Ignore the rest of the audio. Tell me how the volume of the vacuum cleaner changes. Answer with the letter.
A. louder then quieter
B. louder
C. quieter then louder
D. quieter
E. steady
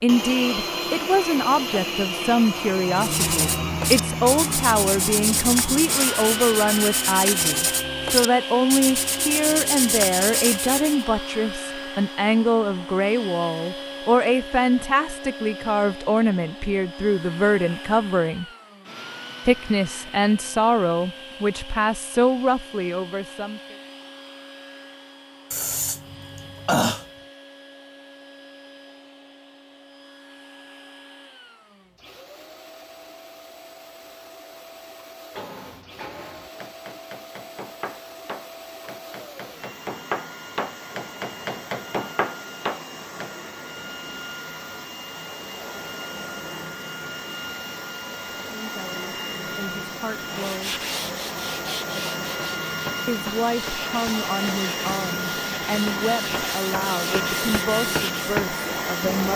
C.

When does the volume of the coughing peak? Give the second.
27 s.